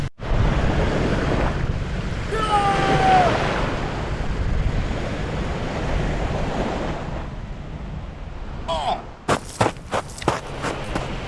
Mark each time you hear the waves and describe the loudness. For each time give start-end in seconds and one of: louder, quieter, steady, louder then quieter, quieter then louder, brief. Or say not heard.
0.0-11.2 quieter.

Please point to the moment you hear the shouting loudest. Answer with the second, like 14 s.
3 s.